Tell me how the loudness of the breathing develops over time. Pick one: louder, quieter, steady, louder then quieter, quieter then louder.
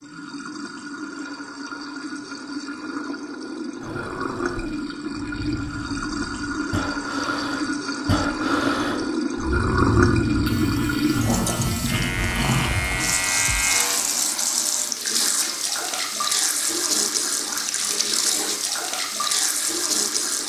louder.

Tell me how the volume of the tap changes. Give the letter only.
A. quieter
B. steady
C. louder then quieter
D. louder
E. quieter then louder
D.